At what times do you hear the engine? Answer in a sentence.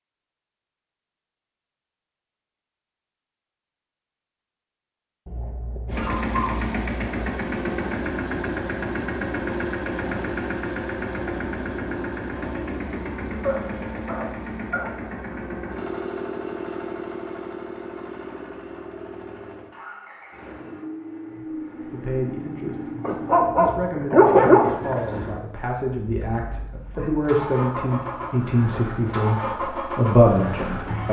You can hear the engine from 5.8 to 31.0 s.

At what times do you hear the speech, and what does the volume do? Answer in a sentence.
You can hear the speech from 21.3 to 31.0 s, getting louder.